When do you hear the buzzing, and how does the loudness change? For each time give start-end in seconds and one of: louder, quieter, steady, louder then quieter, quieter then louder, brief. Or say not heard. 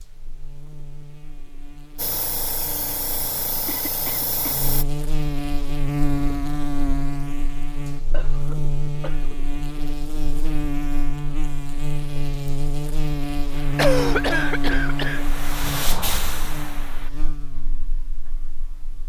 0.0-19.0 louder then quieter.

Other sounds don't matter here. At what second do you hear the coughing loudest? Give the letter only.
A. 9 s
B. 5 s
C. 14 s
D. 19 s
C.